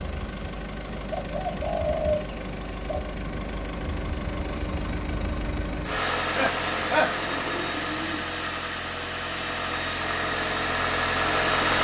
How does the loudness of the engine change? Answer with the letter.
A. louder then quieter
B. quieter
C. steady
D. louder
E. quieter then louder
D.